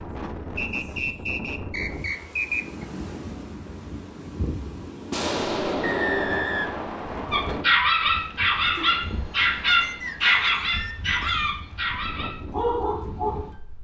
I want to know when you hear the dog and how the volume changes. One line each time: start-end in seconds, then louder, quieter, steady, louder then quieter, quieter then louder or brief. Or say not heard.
7.3-13.4 quieter.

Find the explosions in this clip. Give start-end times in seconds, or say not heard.
5.1-6.7.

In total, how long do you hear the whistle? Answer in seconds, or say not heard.
6 s.